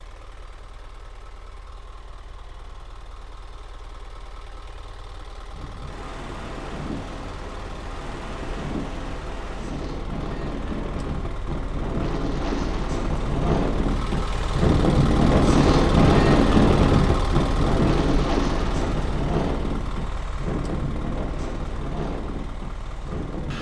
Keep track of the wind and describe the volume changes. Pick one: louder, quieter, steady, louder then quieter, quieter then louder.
louder then quieter.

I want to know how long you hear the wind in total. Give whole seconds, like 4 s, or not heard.
18 s.